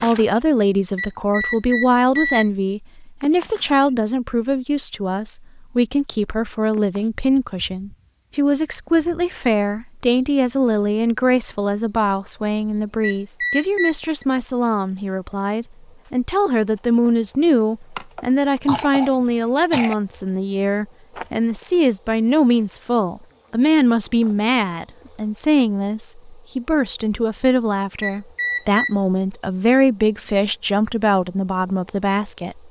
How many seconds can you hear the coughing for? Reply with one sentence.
You can hear the coughing for 2 seconds altogether.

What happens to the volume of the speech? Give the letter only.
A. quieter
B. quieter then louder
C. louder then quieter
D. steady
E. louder
D.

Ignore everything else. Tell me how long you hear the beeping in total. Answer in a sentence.
You can hear the beeping for 4 seconds altogether.